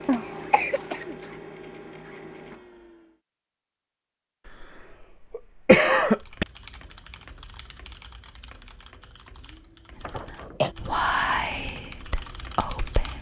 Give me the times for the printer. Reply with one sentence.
The printer can be heard from 0.0 to 3.2 s.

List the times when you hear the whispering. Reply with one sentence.
The whispering can be heard from 9.9 to 13.1 s.